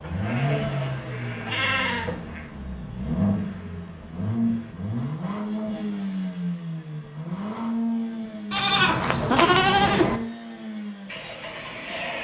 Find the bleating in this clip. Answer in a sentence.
The bleating can be heard from 0.0 to 2.5 s and from 8.5 to 10.2 s.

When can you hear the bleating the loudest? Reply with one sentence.
The loudest moment of the bleating is at 10 seconds.